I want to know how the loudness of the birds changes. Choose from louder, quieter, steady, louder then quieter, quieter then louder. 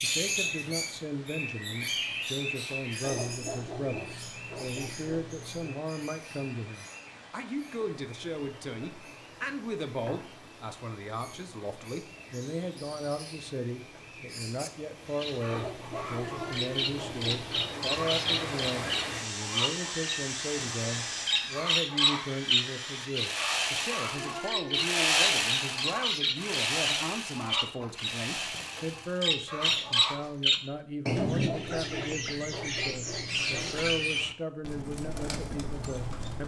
quieter then louder.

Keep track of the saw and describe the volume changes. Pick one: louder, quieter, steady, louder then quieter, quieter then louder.
louder then quieter.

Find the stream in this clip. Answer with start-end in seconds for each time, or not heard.
0.0-21.4.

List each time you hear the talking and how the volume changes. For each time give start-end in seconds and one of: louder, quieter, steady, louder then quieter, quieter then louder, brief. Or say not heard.
0.0-36.4 steady.